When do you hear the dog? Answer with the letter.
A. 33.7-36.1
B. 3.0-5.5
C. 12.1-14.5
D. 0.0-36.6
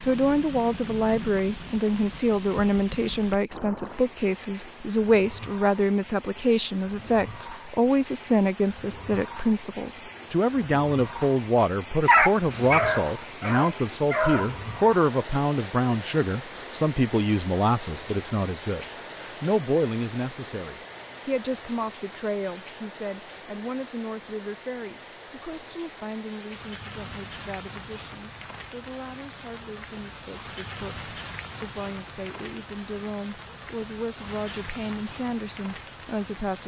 C.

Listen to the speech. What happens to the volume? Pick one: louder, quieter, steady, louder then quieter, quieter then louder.
quieter.